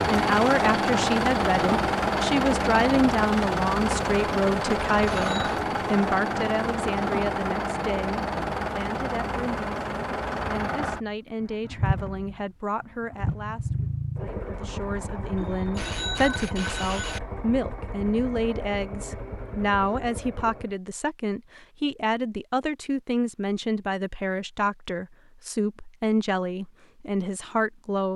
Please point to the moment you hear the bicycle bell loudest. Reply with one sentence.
The volume of the bicycle bell peaks at 16 seconds.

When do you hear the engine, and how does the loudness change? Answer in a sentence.
The engine can be heard from 0.0 to 20.8 s, getting quieter.